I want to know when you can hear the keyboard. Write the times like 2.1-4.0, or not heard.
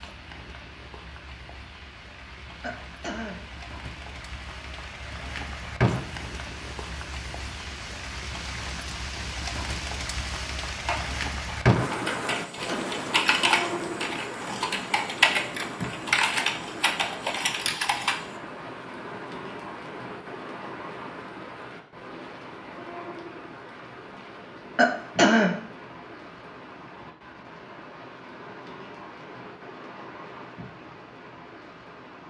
10.8-18.3.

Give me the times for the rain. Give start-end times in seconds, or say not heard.
0.0-32.2.